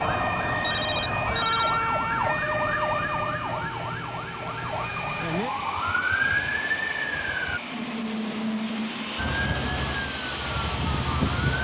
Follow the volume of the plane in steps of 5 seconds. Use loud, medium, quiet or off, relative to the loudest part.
medium, loud, loud.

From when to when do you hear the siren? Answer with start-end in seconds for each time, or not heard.
0.0-7.6, 9.2-11.5.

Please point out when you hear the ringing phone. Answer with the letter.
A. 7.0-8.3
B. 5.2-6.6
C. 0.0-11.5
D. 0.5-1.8
D.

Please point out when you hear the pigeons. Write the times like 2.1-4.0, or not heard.
not heard.